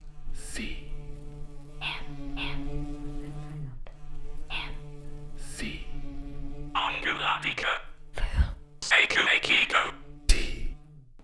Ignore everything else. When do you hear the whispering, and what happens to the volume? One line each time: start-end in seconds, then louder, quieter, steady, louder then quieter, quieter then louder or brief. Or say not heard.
0.2-10.8 quieter then louder.